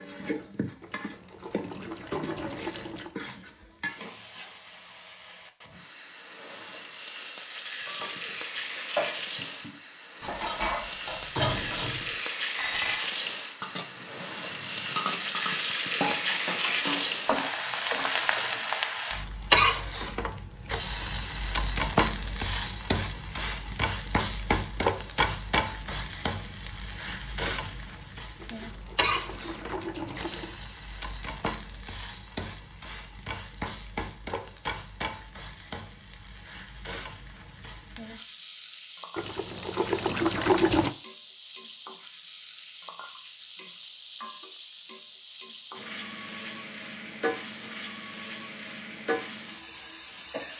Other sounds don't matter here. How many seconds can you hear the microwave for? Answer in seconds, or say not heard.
not heard.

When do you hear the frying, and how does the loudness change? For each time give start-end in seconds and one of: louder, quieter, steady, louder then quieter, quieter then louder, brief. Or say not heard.
0.0-50.5 louder then quieter.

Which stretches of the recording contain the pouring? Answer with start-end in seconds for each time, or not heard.
0.8-3.1, 28.4-30.5, 39.1-41.0.